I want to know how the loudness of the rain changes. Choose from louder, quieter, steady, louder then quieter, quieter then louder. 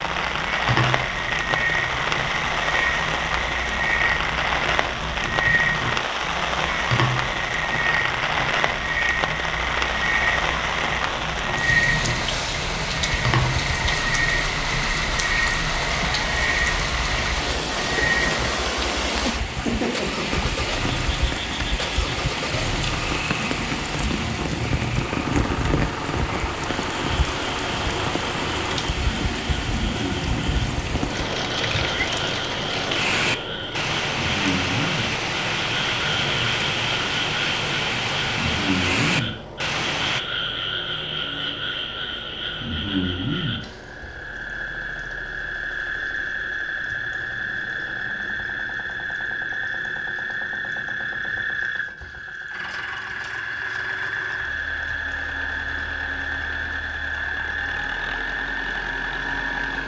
steady.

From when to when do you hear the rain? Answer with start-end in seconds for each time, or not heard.
0.0-40.2.